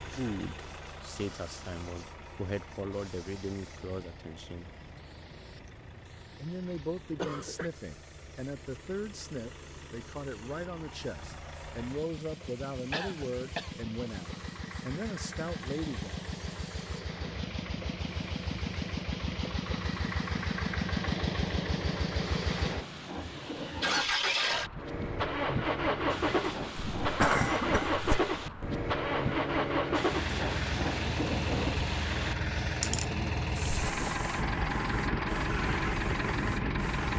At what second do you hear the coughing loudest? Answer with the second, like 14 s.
27 s.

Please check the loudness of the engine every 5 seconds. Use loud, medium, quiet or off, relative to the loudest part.
quiet, quiet, quiet, medium, loud, loud, loud, loud.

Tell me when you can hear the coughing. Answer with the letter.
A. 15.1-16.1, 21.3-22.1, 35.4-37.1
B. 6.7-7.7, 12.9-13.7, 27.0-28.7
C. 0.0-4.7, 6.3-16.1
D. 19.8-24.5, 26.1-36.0
B.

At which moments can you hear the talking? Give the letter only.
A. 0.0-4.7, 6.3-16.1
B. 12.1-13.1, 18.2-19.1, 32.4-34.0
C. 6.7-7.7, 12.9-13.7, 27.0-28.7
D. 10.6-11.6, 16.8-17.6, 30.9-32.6
A.